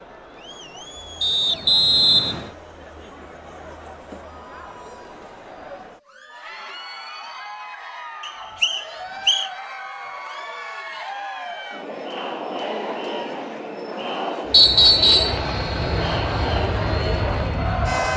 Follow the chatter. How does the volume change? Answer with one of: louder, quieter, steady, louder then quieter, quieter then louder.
louder.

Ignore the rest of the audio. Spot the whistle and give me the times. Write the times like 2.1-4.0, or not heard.
1.2-2.5, 8.2-9.5, 14.5-15.4.